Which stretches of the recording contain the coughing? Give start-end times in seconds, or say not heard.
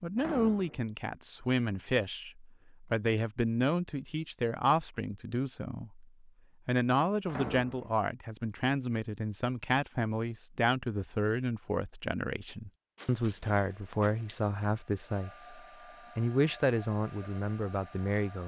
not heard.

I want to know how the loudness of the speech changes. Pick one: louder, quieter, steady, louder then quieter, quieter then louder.
steady.